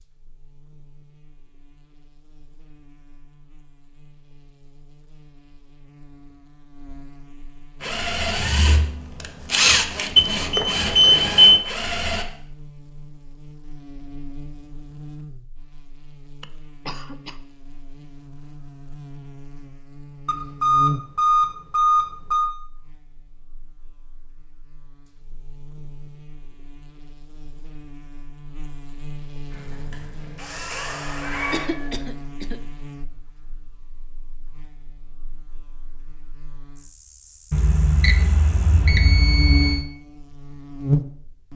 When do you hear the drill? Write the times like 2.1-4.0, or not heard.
7.8-12.2, 29.5-31.9.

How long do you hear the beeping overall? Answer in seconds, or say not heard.
6 s.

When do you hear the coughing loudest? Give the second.
32 s.